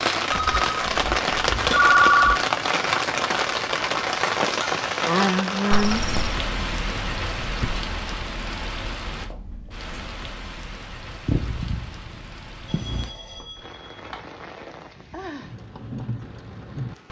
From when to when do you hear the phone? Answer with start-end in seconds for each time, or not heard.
0.3-2.4, 5.7-6.3, 12.7-14.2.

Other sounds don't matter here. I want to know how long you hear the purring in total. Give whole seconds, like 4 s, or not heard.
3 s.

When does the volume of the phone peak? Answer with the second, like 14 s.
2 s.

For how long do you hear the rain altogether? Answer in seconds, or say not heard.
17 s.